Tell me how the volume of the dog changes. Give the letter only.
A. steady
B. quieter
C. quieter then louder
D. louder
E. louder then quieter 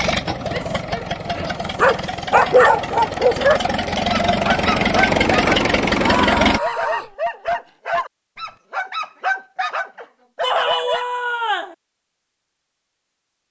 B.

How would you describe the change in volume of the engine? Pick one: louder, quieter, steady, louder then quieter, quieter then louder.
louder.